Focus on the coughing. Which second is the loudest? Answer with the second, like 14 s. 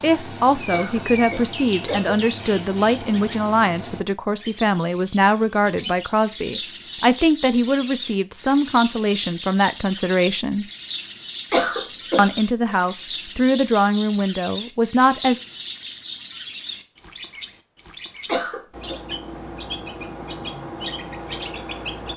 12 s.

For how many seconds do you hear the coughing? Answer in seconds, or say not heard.
3 s.